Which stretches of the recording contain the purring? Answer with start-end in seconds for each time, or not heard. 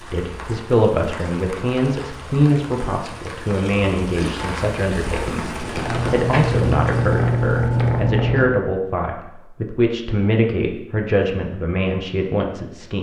5.1-8.5.